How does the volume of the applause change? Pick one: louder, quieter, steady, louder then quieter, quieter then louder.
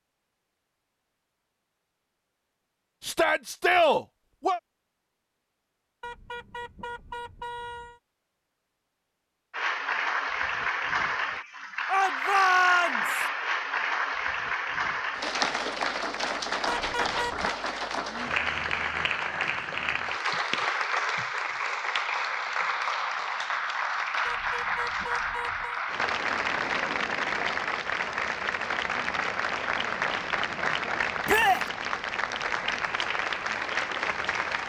steady.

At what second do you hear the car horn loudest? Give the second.
17 s.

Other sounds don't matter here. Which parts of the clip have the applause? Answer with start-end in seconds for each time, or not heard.
9.5-34.6.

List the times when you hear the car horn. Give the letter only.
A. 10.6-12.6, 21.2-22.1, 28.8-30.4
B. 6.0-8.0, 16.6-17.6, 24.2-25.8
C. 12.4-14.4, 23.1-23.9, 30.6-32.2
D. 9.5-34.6
B.